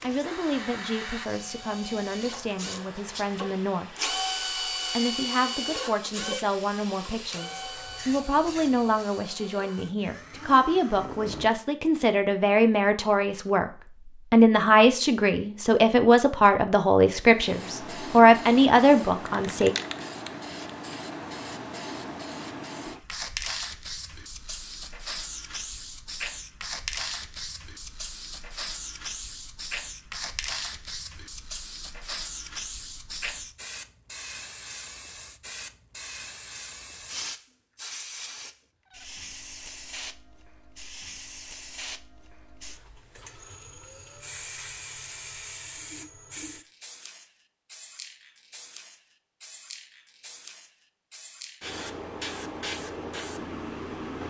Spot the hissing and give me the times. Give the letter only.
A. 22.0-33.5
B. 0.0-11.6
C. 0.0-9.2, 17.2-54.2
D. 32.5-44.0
C.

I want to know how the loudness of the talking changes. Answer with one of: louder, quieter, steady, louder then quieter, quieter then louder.
louder.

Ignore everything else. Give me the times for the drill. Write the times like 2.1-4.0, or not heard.
0.0-11.6.